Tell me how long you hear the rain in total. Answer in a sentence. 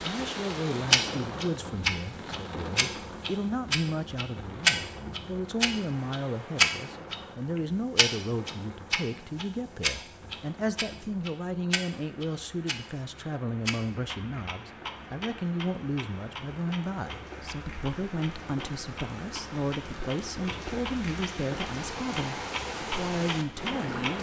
The rain can be heard for 24 seconds in total.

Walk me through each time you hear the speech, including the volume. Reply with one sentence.
You can hear the speech from 0.0 to 24.1 s, at a steady volume.